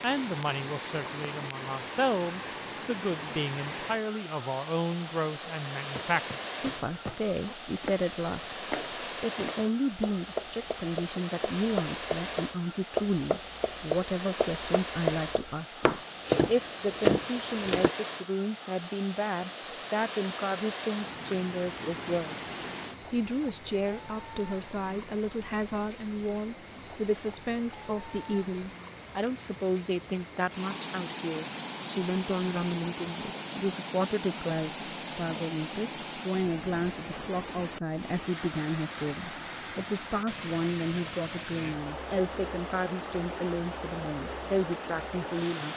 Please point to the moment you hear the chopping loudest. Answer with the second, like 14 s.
17 s.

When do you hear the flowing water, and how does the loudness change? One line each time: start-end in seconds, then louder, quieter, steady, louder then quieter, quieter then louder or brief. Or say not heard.
0.0-45.7 steady.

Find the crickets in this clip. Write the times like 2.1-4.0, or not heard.
not heard.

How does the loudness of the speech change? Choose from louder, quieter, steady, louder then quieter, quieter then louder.
steady.